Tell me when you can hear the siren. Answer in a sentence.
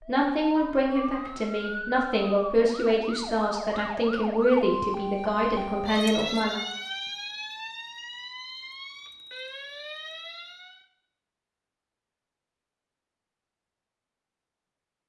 You can hear the siren from 0.0 to 10.8 s.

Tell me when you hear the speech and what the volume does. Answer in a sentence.
The speech can be heard from 0.1 to 6.5 s, at a steady volume.